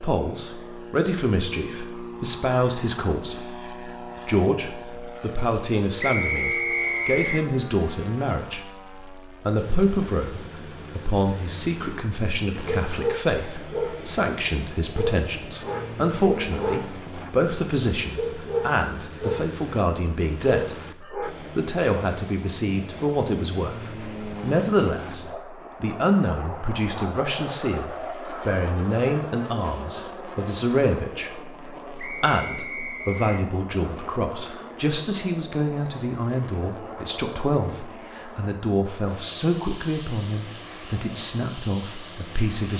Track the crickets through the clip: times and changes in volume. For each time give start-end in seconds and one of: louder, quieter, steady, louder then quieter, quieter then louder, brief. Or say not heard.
not heard.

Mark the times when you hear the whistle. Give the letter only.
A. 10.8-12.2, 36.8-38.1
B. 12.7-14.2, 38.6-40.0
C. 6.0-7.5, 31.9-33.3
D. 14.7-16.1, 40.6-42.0
C.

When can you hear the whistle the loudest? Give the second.
7 s.